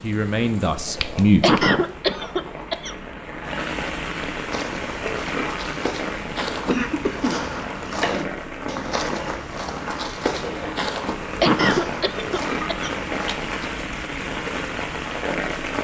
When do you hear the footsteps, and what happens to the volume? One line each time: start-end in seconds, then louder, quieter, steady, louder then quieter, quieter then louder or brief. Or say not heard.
4.5-13.7 steady.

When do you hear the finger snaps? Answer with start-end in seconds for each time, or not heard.
0.8-1.6, 12.6-13.3.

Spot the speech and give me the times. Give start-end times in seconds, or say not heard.
0.0-1.6.